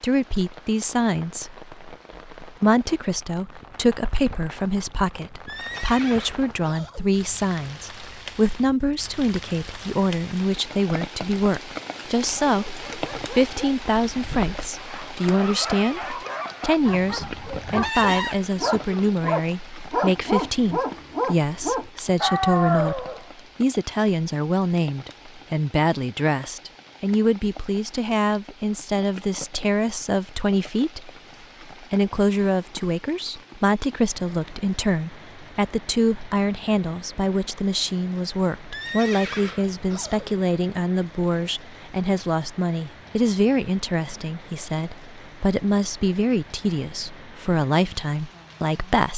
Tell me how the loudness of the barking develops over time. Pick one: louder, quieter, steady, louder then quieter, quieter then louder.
louder.